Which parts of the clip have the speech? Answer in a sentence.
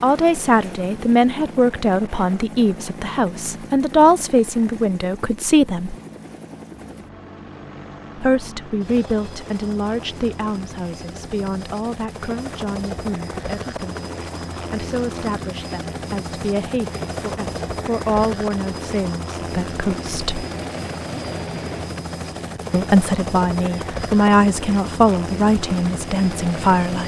You can hear the speech from 0.0 to 6.0 s, from 8.2 to 20.4 s and from 22.7 to 27.0 s.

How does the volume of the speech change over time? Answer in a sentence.
The loudness of the speech goes down, then up.